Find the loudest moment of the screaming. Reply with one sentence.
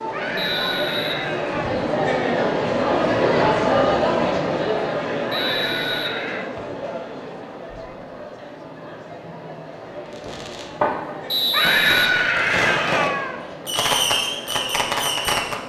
The volume of the screaming peaks at 12 seconds.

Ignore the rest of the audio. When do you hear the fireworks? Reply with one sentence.
You can hear the fireworks from 10.2 to 15.6 s.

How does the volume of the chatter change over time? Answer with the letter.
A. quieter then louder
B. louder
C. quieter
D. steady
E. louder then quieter
C.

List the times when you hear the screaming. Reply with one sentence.
The screaming can be heard from 0.1 to 1.6 s, from 5.3 to 6.5 s and from 11.5 to 13.3 s.